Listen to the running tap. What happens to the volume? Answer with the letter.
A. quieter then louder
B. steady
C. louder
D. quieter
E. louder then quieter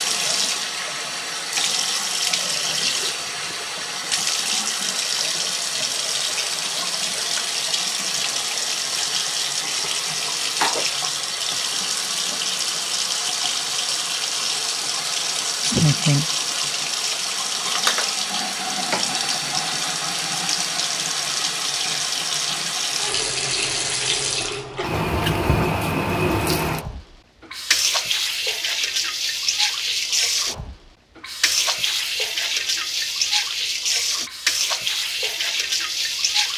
B.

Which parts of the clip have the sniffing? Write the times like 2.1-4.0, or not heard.
15.6-16.2.